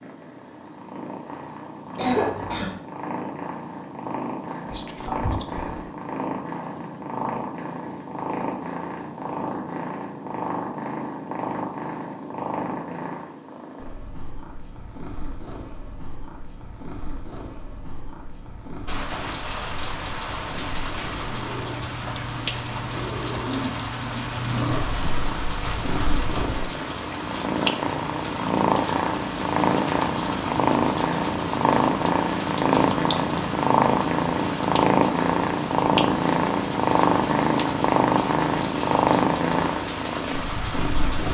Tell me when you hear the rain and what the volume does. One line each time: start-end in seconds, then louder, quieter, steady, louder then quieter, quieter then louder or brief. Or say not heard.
18.9-41.3 steady.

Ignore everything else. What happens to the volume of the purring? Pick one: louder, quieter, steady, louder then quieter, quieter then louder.
louder.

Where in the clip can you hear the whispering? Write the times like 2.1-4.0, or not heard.
4.7-5.8.